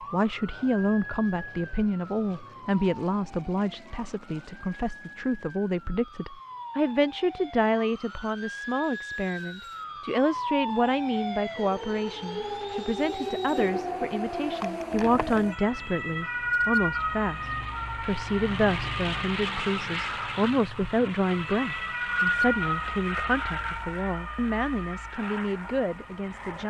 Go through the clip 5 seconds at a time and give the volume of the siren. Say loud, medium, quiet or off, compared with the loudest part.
quiet, medium, loud, loud, loud, quiet.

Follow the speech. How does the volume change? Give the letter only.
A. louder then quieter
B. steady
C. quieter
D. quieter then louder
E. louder
B.